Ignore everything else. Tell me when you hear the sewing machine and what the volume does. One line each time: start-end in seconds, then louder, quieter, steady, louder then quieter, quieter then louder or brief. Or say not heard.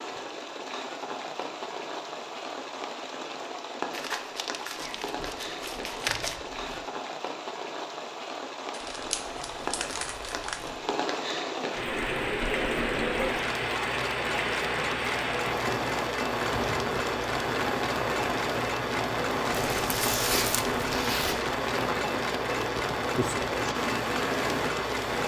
11.8-25.2 steady.